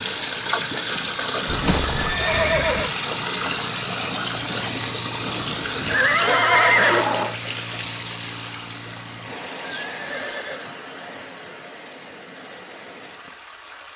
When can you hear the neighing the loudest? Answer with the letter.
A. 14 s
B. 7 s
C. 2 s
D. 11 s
B.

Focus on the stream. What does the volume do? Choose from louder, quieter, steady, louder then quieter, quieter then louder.
quieter.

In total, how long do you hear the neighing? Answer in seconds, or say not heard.
4 s.